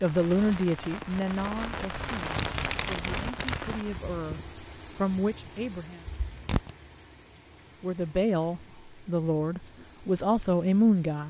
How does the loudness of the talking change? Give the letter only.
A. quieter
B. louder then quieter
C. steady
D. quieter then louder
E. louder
D.